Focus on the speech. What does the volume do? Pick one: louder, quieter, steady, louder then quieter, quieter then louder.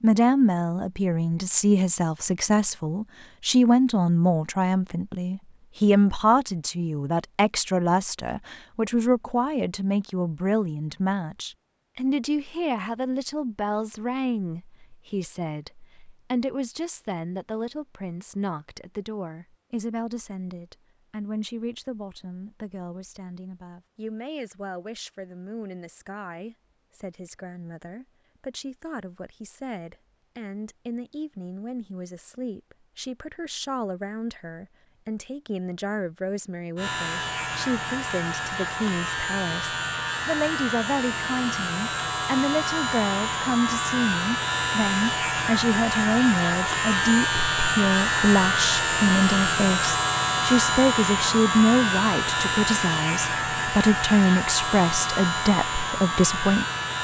quieter then louder.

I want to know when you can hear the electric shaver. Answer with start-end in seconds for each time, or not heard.
36.8-56.9.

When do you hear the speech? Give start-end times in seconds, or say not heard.
0.0-56.9.